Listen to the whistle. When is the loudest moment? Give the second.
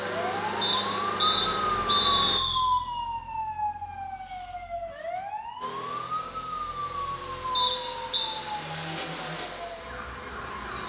2 s.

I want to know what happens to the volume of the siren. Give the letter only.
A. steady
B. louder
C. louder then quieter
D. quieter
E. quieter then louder
D.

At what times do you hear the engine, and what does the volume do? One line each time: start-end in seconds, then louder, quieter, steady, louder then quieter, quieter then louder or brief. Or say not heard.
0.0-2.4 brief
5.6-10.8 louder then quieter.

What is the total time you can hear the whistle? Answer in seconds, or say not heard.
3 s.